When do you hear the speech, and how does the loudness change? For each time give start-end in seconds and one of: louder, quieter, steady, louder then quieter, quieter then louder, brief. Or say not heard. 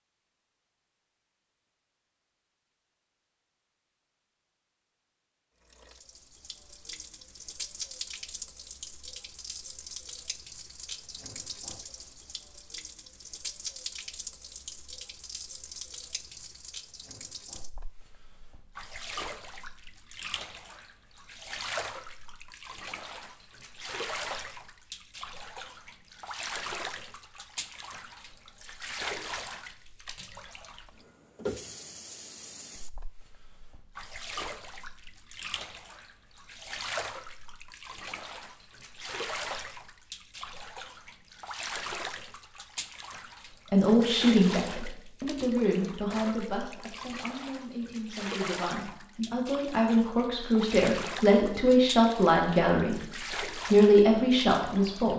43.7-55.1 quieter then louder.